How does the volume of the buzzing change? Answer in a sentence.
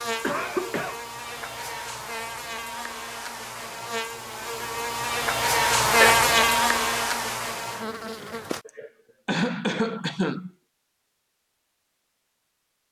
The loudness of the buzzing goes up, then down.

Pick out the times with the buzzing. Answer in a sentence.
The buzzing can be heard from 0.0 to 8.7 s.